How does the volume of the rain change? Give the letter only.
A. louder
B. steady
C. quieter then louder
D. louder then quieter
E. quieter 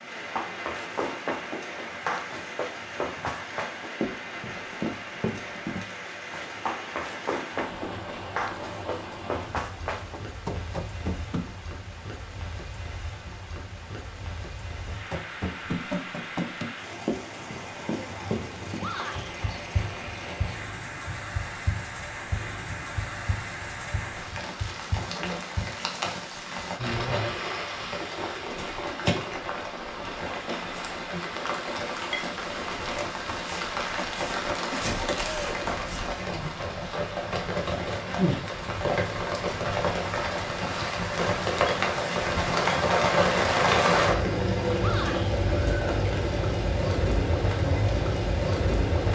A.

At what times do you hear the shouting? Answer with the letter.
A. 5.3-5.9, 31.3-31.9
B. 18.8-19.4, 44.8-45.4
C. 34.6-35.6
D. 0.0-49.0
B.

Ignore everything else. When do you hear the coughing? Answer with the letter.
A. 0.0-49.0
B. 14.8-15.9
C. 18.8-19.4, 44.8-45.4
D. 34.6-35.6
D.